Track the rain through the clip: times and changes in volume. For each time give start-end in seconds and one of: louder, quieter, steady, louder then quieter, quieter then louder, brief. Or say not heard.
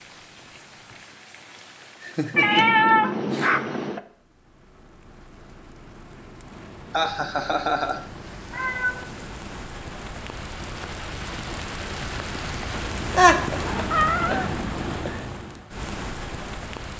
0.0-16.9 louder.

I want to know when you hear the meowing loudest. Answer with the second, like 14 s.
3 s.